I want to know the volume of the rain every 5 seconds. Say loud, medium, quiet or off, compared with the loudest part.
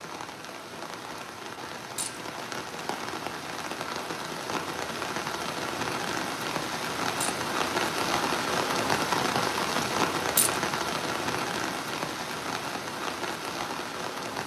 medium, loud, loud.